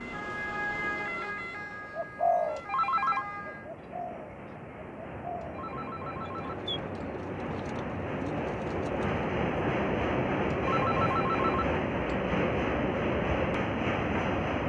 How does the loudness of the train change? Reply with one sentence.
The volume of the train goes up.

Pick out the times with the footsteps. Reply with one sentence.
The footsteps can't be heard in this clip.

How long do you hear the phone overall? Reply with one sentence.
You can hear the phone for 4 seconds altogether.